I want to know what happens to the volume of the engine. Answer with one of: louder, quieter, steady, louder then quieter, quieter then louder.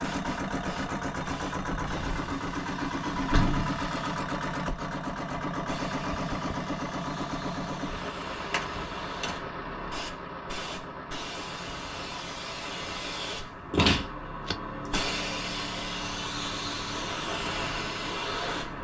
quieter.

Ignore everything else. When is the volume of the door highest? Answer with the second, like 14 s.
14 s.